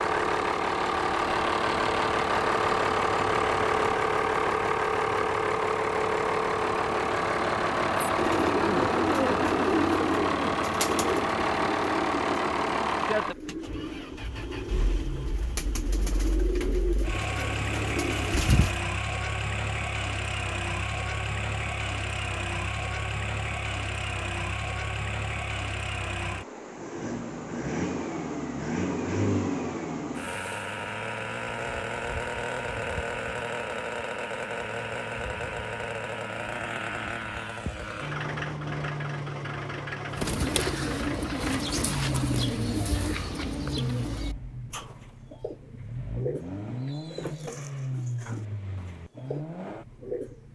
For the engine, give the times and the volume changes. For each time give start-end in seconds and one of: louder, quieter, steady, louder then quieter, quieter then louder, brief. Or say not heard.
0.0-50.5 quieter.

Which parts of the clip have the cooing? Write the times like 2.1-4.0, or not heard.
8.0-18.8, 40.1-50.5.